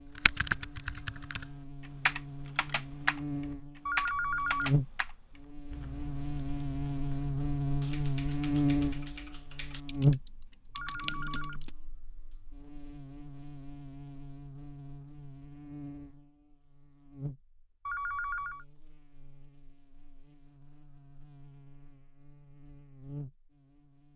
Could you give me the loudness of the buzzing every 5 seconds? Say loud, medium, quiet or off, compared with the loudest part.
medium, loud, loud, quiet, quiet.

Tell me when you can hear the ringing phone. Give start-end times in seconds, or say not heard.
3.9-4.8, 10.8-11.6, 17.9-18.6.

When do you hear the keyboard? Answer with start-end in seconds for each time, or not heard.
0.1-11.7.